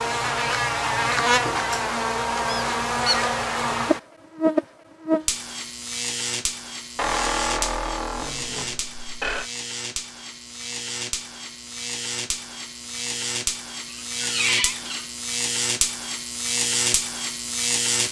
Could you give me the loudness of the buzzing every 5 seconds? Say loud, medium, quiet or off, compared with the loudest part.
loud, medium, medium, loud.